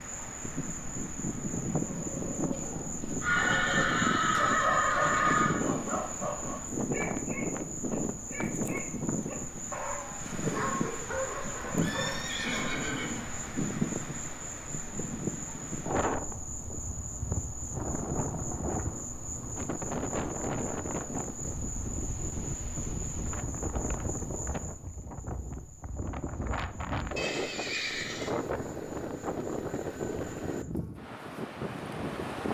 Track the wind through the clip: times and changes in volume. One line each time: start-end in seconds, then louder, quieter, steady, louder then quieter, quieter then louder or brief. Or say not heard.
0.0-32.4 steady.